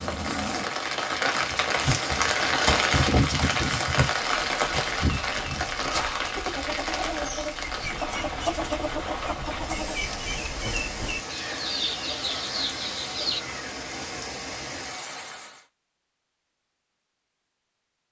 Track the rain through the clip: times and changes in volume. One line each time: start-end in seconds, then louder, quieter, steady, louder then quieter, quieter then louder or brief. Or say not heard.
0.0-15.7 quieter.